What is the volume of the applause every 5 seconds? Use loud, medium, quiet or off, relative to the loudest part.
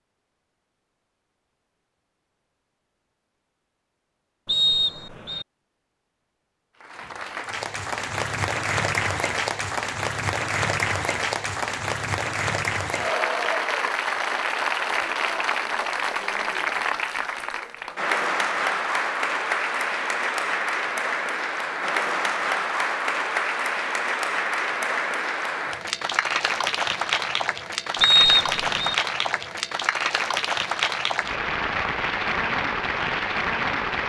off, loud, loud, loud, loud, loud, loud.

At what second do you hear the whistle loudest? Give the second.
28 s.